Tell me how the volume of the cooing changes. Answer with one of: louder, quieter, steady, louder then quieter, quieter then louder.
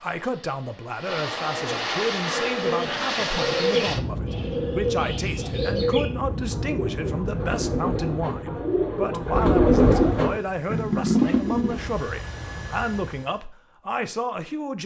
louder.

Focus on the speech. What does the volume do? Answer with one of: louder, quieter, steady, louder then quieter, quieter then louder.
steady.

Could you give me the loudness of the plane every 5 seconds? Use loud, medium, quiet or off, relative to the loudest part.
loud, loud, medium.